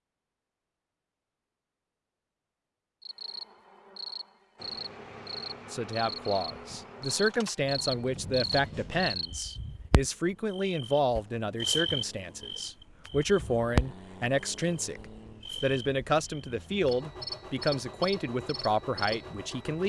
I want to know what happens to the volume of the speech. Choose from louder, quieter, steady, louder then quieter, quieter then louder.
steady.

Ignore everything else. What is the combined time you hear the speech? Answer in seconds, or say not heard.
14 s.